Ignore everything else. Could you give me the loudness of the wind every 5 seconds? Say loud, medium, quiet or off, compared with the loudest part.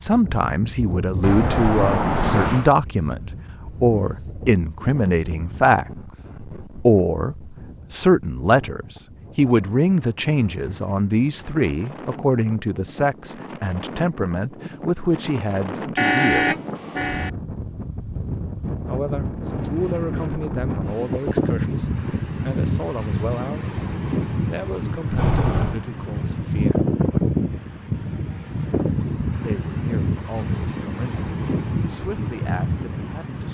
medium, quiet, quiet, medium, loud, loud, loud.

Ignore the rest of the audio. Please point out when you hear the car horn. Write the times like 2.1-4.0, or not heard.
1.2-2.7, 15.9-17.3, 25.1-25.8.